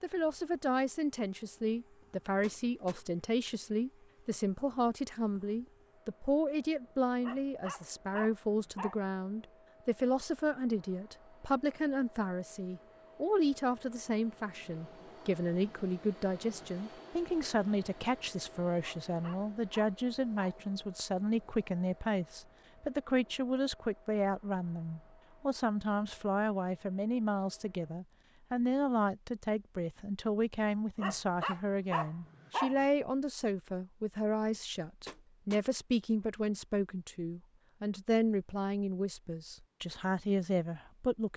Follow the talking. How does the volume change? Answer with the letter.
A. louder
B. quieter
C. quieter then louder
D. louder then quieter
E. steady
E.